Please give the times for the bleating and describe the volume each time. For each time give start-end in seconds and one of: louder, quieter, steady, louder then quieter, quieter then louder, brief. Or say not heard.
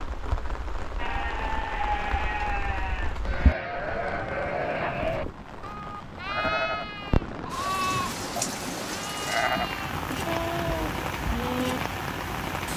0.9-11.8 steady.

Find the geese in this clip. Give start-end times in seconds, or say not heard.
not heard.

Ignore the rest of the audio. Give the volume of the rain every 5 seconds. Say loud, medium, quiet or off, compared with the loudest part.
medium, loud, loud.